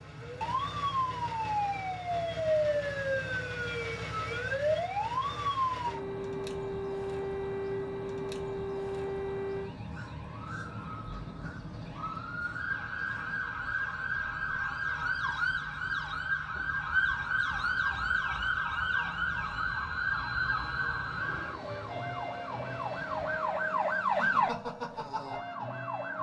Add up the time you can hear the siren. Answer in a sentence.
You can hear the siren for 26 seconds altogether.